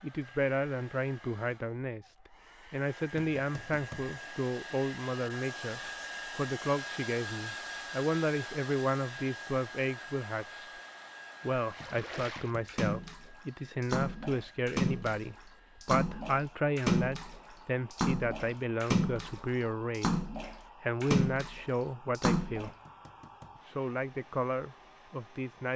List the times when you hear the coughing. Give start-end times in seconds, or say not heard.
not heard.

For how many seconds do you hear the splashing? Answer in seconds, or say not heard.
11 s.